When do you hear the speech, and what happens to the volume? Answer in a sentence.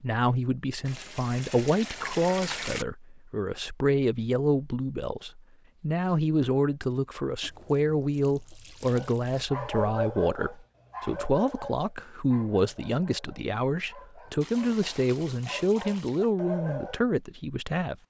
The speech can be heard from 0.0 to 18.0 s, at a steady volume.